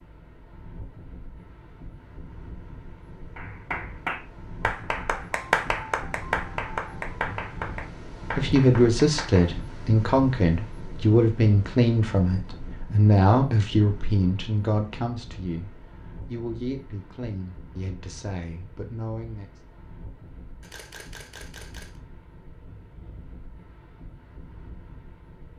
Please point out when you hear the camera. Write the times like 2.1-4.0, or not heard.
20.6-22.0.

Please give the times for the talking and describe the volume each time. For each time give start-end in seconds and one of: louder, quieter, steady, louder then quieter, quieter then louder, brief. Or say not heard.
8.3-19.5 quieter.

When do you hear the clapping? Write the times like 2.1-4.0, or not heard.
3.4-9.6.